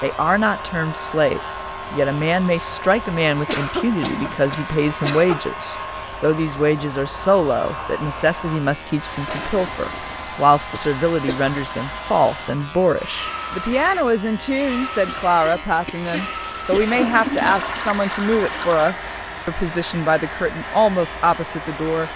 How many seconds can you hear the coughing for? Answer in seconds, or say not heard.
5 s.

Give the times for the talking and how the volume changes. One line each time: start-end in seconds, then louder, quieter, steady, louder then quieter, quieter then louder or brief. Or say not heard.
0.0-22.1 steady.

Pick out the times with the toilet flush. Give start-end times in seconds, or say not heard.
4.0-5.0, 9.2-10.3, 16.9-18.9.